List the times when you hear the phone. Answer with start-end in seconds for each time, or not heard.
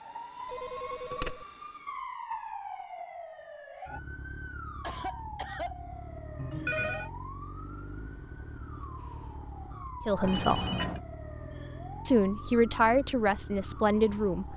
0.5-1.4, 6.3-7.1, 10.2-11.0.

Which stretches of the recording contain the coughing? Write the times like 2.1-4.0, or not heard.
4.8-5.8.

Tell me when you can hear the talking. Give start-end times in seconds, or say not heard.
10.1-10.7, 12.1-14.5.